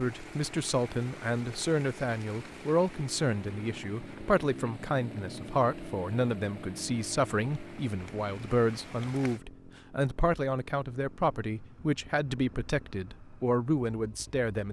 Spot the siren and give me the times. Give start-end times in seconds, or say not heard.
not heard.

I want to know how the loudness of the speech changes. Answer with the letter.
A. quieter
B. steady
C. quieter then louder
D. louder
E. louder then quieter
B.